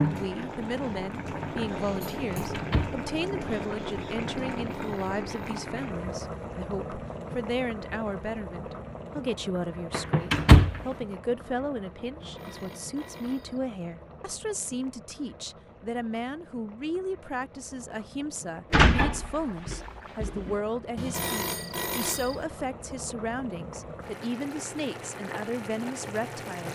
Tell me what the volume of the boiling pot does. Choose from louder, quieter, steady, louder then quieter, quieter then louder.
quieter then louder.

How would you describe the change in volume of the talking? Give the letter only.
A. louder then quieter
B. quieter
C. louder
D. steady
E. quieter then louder
D.